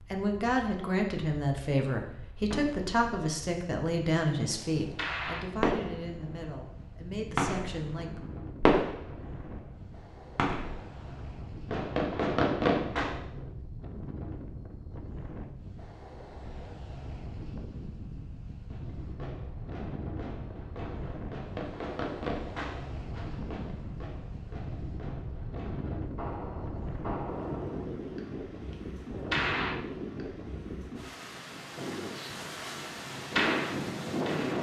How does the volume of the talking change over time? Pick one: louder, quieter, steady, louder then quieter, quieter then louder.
quieter.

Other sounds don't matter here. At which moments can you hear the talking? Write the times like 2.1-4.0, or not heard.
0.0-8.2.